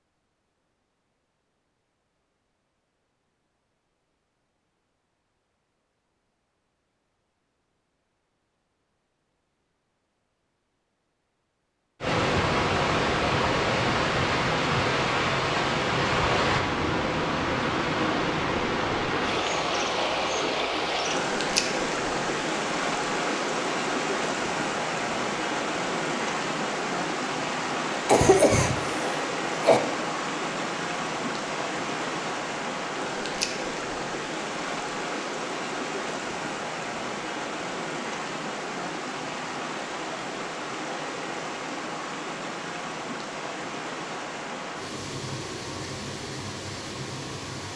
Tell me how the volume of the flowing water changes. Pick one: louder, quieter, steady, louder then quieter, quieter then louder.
quieter.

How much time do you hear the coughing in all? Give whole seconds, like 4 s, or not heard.
2 s.